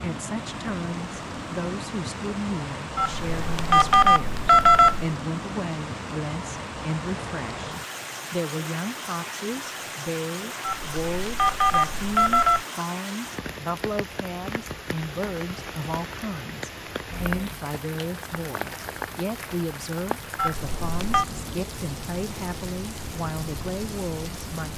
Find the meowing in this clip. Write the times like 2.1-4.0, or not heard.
not heard.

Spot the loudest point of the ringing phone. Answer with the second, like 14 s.
5 s.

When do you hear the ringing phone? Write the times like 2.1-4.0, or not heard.
3.0-5.1, 10.6-12.7, 20.4-21.2.